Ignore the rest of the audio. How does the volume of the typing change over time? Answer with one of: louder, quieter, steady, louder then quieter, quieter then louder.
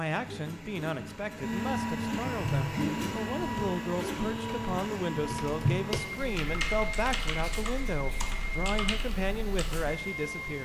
louder then quieter.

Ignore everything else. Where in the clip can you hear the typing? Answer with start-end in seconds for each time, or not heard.
2.4-9.9.